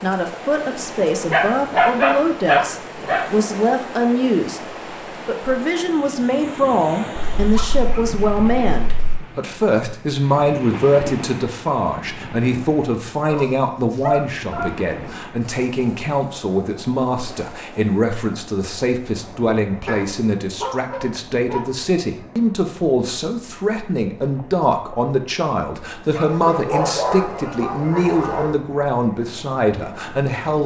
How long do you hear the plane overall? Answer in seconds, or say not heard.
not heard.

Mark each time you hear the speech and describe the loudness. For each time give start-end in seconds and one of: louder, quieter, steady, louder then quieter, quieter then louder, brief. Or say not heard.
0.0-30.6 steady.